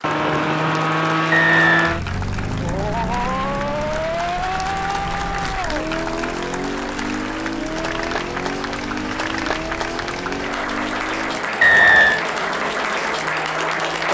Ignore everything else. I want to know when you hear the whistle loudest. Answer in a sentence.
The volume of the whistle peaks at 12 seconds.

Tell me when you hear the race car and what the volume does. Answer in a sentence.
You can hear the race car from 0.0 to 14.1 s, getting quieter.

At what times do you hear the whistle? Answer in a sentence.
You can hear the whistle from 1.3 to 1.9 s and from 11.6 to 12.2 s.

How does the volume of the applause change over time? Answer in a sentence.
The loudness of the applause goes up.